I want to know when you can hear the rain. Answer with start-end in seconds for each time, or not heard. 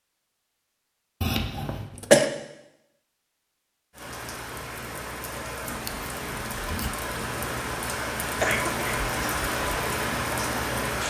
3.9-11.0.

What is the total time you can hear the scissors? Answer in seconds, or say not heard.
2 s.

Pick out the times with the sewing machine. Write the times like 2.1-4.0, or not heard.
not heard.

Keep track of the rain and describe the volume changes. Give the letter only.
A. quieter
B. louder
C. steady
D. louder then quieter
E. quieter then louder
B.